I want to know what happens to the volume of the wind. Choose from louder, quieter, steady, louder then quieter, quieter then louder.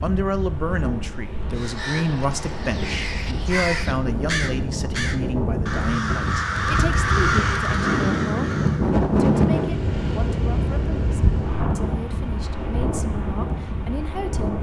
louder then quieter.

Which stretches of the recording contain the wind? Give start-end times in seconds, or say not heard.
0.0-14.5.